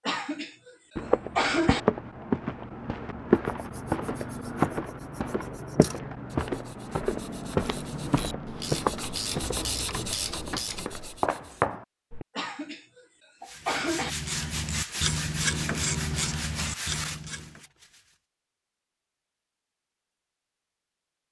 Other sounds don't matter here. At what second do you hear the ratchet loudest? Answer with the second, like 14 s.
16 s.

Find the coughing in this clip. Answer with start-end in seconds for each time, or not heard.
0.1-1.8, 12.3-14.2.